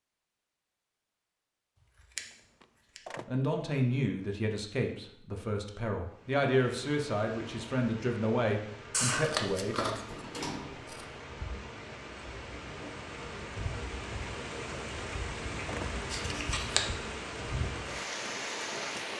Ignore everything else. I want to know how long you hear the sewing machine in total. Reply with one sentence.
You can't hear the sewing machine here.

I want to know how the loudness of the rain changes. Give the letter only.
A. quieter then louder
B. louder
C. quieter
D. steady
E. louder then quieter
B.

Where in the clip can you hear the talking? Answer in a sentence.
You can hear the talking from 3.2 to 10.0 s.